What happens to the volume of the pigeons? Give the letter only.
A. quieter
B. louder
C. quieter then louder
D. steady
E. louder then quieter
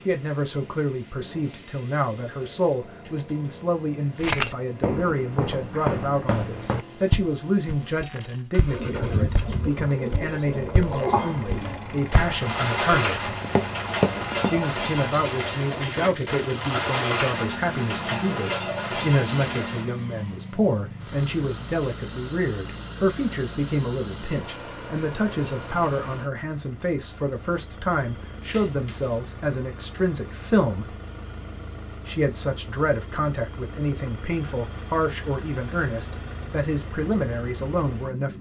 D.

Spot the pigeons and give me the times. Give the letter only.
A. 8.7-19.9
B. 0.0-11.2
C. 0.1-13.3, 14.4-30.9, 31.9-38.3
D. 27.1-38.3
A.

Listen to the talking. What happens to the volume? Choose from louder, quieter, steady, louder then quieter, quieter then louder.
steady.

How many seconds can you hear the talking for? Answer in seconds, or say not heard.
36 s.